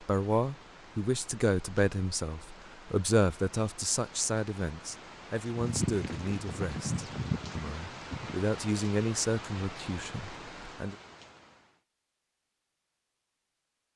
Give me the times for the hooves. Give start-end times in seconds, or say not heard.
5.5-8.4.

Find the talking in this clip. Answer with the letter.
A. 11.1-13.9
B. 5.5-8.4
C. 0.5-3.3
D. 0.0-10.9
D.